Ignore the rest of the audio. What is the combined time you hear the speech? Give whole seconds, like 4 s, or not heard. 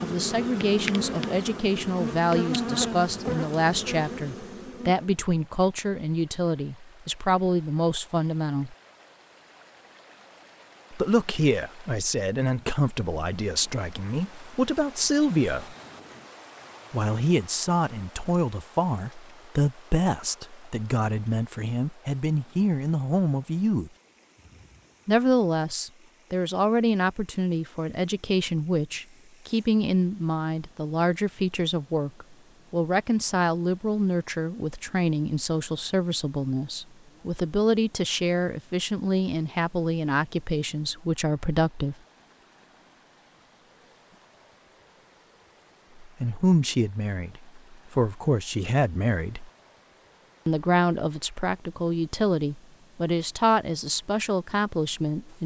46 s.